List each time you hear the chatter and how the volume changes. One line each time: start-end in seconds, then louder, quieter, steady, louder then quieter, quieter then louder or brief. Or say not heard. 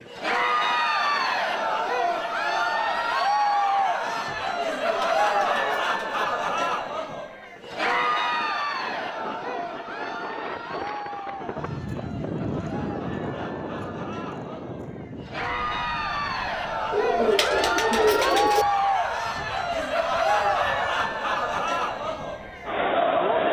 0.1-23.4 quieter then louder.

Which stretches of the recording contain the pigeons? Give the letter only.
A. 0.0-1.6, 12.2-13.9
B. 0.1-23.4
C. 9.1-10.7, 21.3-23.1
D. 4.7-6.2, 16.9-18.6
D.